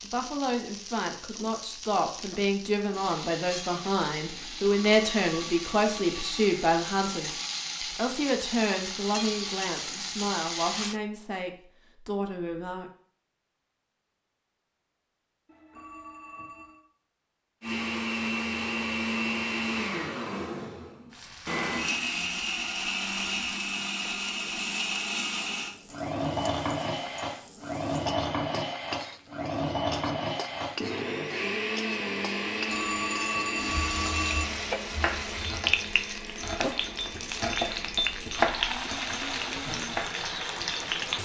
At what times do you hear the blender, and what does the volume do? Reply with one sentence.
The blender can be heard from 17.6 to 41.2 s, getting quieter.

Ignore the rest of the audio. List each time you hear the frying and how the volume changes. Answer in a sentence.
The frying can be heard from 0.0 to 11.0 s, getting louder; and from 21.1 to 41.2 s, getting louder.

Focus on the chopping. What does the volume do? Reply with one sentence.
The volume of the chopping goes up, then down.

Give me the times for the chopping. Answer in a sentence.
The chopping can be heard from 35.0 to 40.1 s.